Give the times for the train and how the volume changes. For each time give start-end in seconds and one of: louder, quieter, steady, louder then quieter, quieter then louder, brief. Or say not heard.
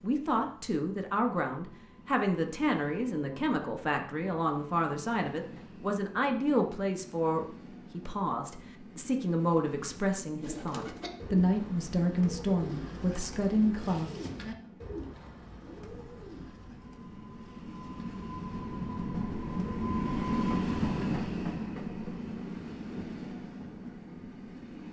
0.0-24.8 louder.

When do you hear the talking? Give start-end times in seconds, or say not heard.
0.0-14.1.